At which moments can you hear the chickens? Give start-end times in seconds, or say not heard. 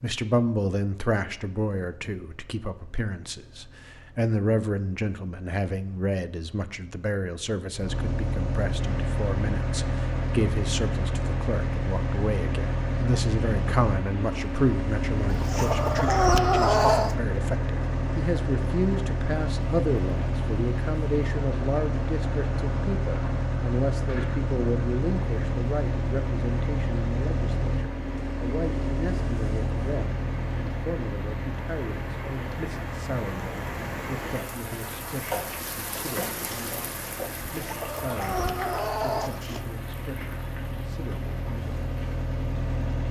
15.2-17.1, 37.5-39.7.